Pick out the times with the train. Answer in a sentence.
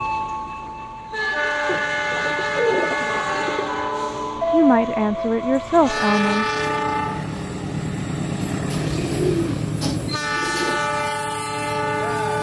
The train can be heard from 0.0 to 12.3 s.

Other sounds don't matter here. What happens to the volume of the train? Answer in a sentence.
The loudness of the train stays about the same.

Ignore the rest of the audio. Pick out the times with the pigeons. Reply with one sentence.
You can hear the pigeons from 1.6 to 3.7 s and from 8.7 to 10.8 s.